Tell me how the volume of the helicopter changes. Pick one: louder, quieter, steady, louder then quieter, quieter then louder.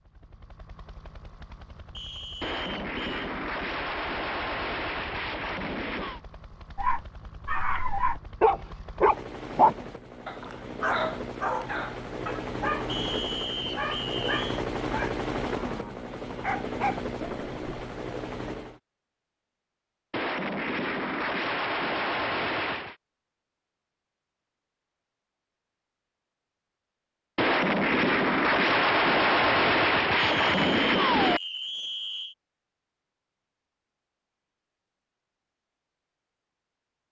louder.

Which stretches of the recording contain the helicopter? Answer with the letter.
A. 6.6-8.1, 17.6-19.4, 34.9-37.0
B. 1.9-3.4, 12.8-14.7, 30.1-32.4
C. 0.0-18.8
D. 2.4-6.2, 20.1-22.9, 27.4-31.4
C.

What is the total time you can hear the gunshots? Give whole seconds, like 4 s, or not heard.
11 s.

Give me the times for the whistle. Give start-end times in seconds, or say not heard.
1.9-3.4, 12.8-14.7, 30.1-32.4.